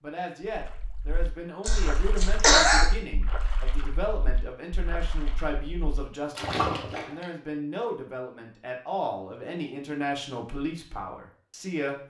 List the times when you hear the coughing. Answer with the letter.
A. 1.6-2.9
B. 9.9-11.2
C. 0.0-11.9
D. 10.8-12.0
A.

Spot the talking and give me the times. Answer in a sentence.
The talking can be heard from 0.0 to 11.9 s.